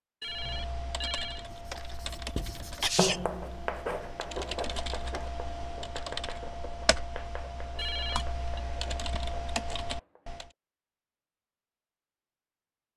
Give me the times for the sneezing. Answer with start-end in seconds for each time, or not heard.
2.8-3.2.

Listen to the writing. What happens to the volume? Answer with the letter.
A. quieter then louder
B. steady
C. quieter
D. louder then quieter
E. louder
C.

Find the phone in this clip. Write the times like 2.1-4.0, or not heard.
0.2-1.4, 7.8-8.6.